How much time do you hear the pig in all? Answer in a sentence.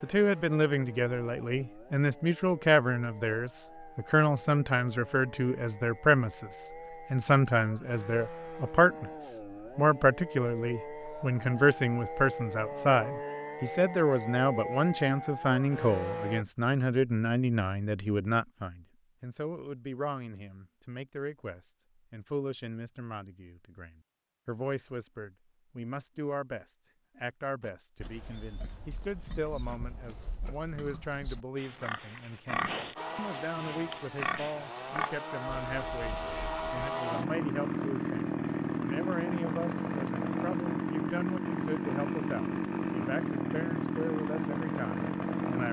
You can hear the pig for 9 seconds altogether.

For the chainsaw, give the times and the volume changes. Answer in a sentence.
The chainsaw can be heard from 0.0 to 16.4 s, getting louder; and from 33.0 to 45.6 s, getting louder.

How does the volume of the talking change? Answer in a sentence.
The volume of the talking goes down.